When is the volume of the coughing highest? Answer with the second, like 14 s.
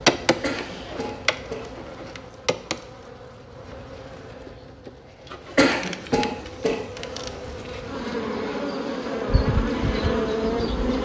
6 s.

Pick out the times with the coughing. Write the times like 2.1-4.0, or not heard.
0.4-2.2, 5.5-7.0.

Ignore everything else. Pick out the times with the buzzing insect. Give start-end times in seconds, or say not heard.
0.0-10.9.